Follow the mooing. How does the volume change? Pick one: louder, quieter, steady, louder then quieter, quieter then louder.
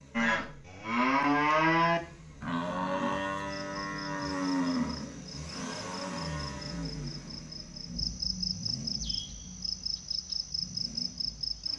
quieter.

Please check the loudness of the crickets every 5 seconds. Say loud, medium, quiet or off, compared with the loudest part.
medium, loud, loud.